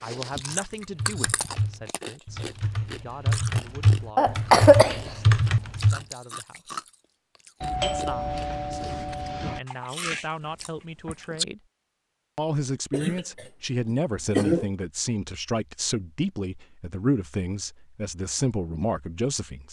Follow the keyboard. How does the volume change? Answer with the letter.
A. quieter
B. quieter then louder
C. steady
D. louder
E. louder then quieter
D.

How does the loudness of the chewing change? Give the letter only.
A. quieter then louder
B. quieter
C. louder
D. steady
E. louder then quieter
A.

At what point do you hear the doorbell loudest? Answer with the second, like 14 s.
8 s.